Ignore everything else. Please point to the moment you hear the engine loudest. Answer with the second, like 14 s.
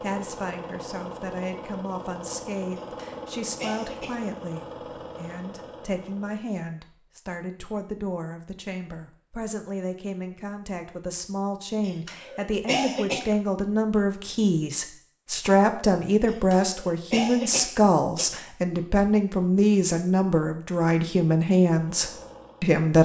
3 s.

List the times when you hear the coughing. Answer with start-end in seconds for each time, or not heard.
2.8-4.2, 11.8-13.3, 16.2-18.3.